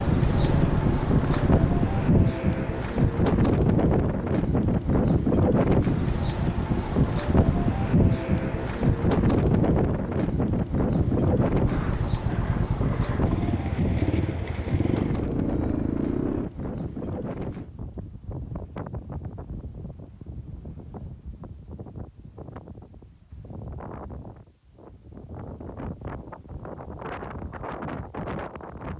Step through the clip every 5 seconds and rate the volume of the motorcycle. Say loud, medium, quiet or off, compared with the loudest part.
loud, off, loud, loud, off, off.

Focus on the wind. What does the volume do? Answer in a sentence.
The loudness of the wind goes down.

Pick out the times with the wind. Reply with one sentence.
You can hear the wind from 0.0 to 28.9 s.